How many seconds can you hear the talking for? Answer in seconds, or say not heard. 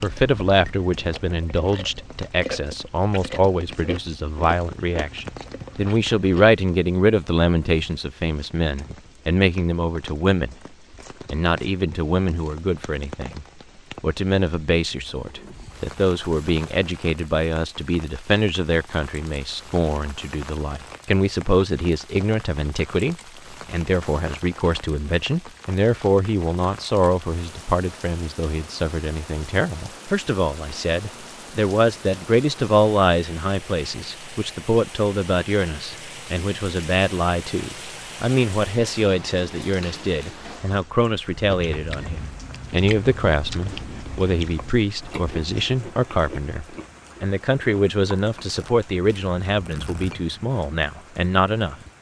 51 s.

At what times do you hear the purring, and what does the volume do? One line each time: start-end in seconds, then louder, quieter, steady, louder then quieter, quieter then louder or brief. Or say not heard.
not heard.